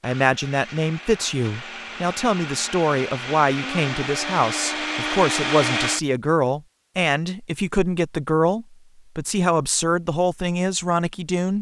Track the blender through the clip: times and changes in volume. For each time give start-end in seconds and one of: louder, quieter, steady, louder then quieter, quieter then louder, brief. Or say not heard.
0.0-6.1 louder.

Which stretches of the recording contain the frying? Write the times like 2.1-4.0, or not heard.
not heard.